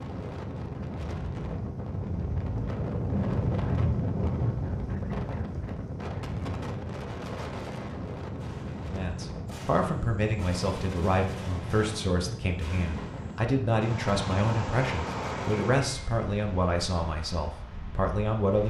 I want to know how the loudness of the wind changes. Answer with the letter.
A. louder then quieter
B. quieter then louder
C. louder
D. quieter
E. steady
D.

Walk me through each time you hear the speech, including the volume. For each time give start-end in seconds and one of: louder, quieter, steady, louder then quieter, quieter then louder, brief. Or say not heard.
8.9-18.6 steady.